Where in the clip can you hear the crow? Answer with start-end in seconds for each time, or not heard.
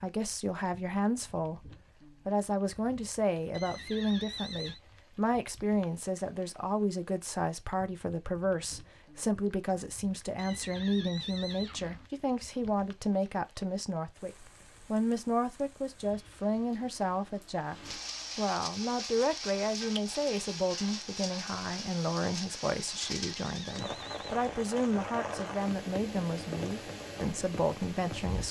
not heard.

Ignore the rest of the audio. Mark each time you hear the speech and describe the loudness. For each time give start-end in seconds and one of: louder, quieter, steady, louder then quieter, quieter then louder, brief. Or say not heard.
0.0-28.4 steady.